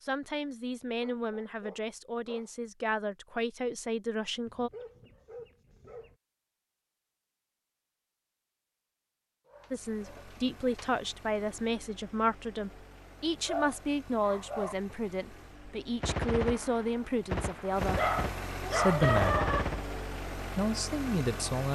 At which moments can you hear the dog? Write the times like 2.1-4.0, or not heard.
0.3-2.5, 4.5-6.2, 9.4-10.9, 13.4-14.8, 17.9-19.6.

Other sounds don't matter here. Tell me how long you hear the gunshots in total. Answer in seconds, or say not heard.
4 s.